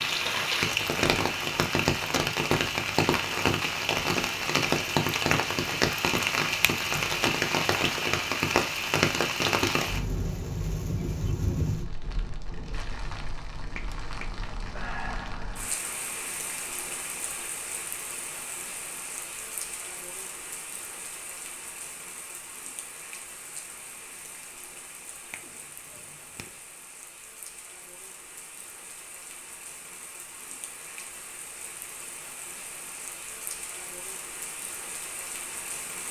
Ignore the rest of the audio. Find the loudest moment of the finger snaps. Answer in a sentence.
The loudest moment of the finger snaps is at 15 seconds.